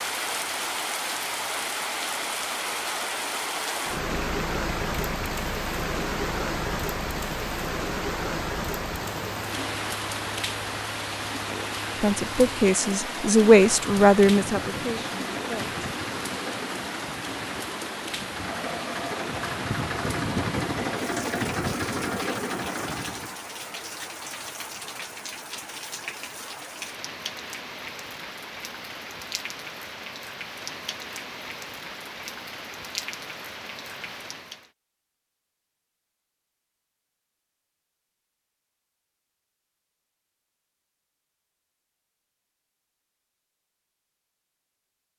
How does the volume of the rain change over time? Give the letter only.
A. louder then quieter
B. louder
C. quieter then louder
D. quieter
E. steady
D.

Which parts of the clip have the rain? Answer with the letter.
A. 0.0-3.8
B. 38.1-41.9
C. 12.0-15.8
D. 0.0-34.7
D.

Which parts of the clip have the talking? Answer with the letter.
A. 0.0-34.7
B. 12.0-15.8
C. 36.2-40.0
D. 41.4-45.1
B.